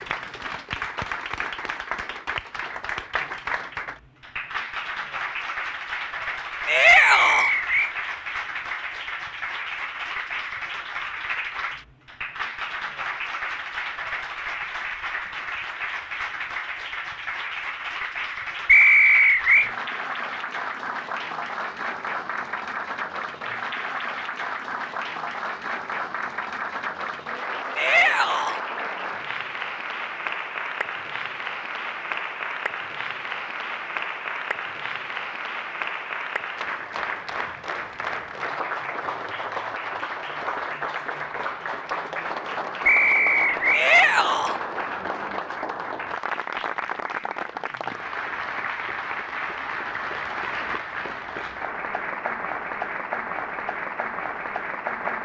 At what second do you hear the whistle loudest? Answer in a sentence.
The loudest moment of the whistle is at 19 seconds.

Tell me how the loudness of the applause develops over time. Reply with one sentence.
The volume of the applause stays about the same.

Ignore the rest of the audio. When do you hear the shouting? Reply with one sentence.
The shouting can be heard from 6.7 to 7.5 s, from 27.8 to 28.6 s and from 43.7 to 44.6 s.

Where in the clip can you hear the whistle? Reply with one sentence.
You can hear the whistle from 7.0 to 8.0 s, from 18.6 to 19.7 s and from 42.9 to 43.9 s.